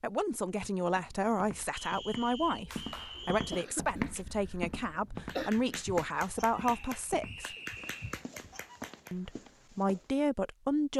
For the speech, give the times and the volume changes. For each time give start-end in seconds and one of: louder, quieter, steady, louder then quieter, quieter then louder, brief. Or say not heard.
0.0-7.5 steady
9.1-10.9 brief.